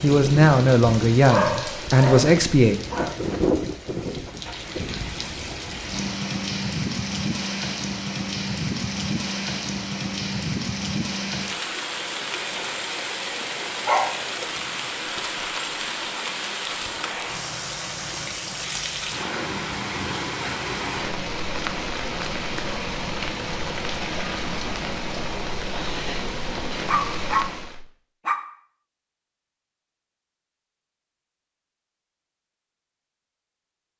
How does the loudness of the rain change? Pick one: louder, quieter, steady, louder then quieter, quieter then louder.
steady.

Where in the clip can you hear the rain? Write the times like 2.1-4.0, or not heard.
0.0-27.8.